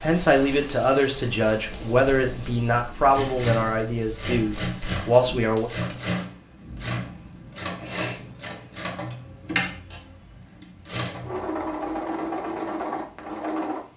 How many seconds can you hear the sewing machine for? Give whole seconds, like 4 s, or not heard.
11 s.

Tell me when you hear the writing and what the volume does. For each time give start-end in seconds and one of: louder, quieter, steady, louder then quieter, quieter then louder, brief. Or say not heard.
not heard.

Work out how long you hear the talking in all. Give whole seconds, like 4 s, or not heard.
6 s.